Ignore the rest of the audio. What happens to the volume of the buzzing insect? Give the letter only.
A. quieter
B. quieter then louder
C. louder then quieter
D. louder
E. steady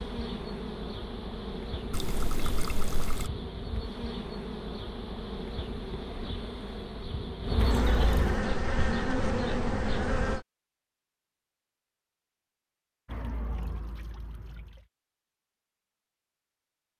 D.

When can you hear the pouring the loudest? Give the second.
8 s.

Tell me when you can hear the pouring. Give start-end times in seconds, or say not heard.
1.9-3.3, 7.5-8.4, 13.1-14.8.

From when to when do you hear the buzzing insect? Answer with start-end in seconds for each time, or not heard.
0.0-10.4.